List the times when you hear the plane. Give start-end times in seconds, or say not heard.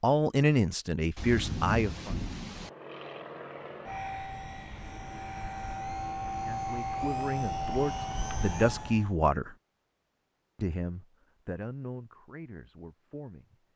2.5-9.2.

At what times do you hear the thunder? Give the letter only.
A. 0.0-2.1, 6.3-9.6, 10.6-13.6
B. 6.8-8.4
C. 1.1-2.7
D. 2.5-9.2
C.